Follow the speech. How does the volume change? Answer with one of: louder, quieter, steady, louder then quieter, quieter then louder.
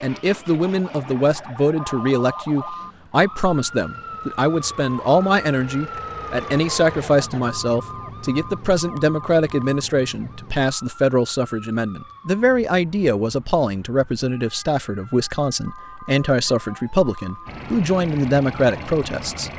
steady.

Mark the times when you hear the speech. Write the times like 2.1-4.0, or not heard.
0.0-19.5.